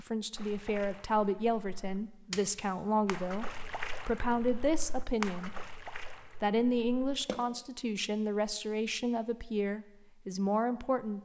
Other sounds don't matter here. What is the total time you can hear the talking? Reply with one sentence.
The talking can be heard for 10 seconds in total.